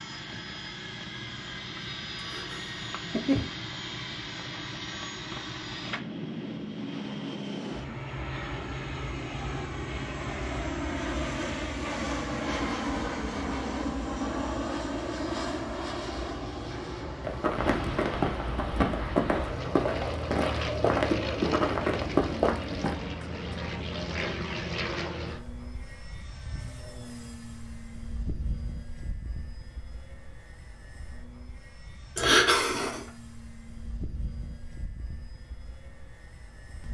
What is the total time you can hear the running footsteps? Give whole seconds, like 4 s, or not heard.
6 s.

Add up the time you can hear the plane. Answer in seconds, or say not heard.
37 s.